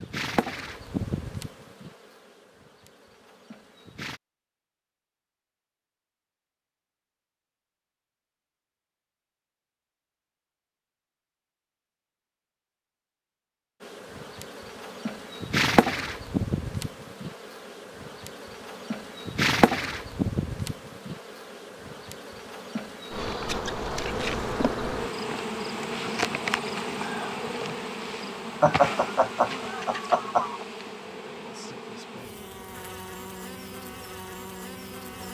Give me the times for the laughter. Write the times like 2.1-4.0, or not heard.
28.6-30.6.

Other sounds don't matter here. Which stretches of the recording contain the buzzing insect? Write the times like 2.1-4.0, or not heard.
0.0-4.2, 13.8-35.2.